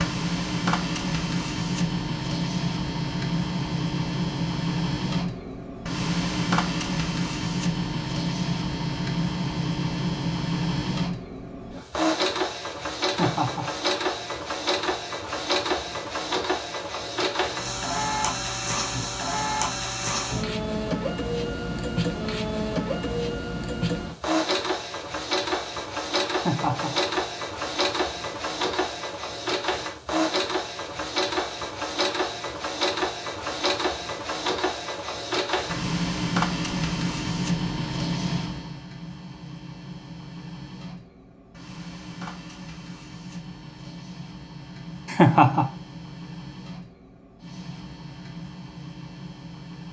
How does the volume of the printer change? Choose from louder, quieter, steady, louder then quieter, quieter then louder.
quieter.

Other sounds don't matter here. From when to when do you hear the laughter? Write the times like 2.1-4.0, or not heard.
13.1-13.7, 26.4-26.9, 45.0-45.7.